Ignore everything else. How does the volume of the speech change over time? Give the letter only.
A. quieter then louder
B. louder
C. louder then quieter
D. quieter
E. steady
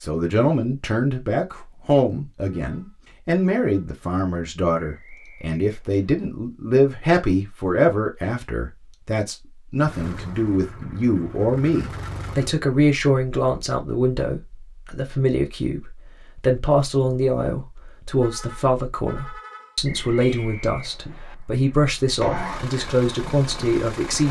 E.